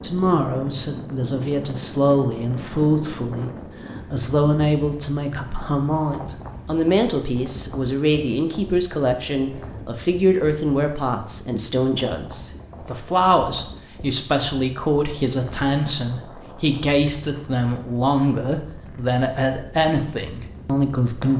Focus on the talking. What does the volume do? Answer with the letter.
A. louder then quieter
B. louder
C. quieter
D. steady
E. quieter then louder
D.